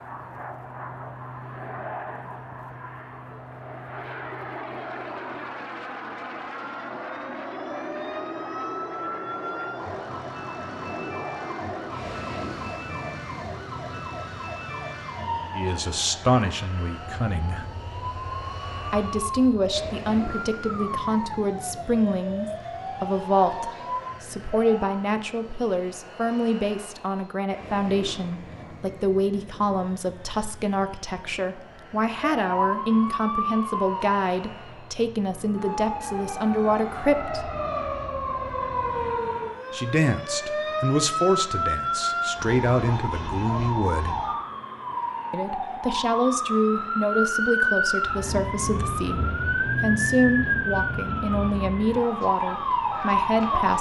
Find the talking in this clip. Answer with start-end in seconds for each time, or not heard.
15.5-17.6, 18.9-37.5, 39.7-44.1, 45.3-53.7.